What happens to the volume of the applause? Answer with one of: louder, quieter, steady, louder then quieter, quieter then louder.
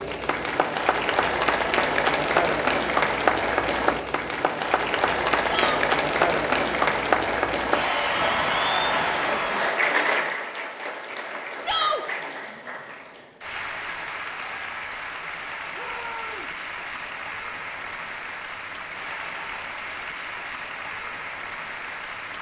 quieter.